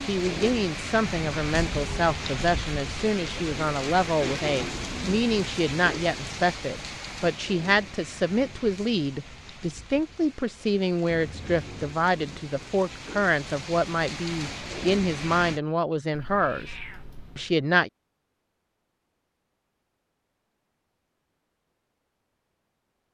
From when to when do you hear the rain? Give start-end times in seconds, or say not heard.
0.0-15.6.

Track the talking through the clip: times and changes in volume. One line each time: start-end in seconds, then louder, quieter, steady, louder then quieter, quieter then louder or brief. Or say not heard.
0.0-16.7 steady
17.4-17.9 brief.